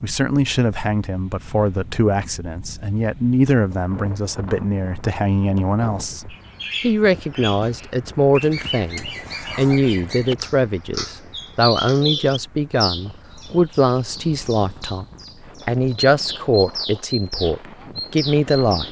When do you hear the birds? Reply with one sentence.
The birds can be heard from 6.3 to 18.8 s.